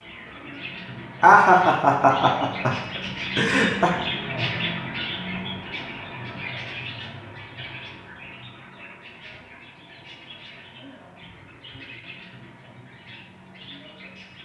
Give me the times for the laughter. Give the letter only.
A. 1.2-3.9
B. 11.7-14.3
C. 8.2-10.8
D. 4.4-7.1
A.